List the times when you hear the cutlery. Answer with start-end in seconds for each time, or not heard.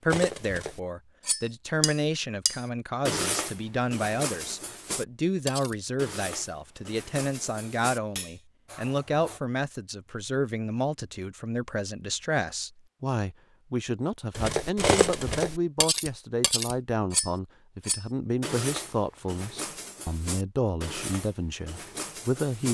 0.1-9.4, 14.3-22.6.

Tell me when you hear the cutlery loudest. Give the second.
15 s.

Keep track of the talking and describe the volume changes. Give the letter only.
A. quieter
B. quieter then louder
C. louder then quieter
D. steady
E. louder
D.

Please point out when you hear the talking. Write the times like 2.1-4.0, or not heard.
0.0-22.6.